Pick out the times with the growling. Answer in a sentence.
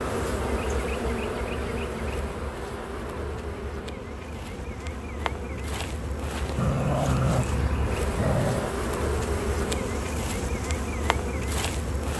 The growling can be heard from 6.5 to 8.8 s.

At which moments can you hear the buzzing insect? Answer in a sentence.
The buzzing insect can be heard from 0.0 to 12.1 s.